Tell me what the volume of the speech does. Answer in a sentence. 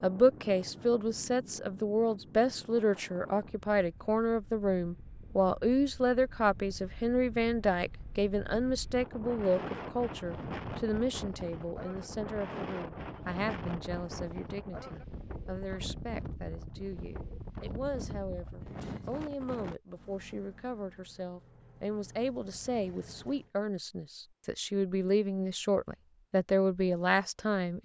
The volume of the speech goes down, then up.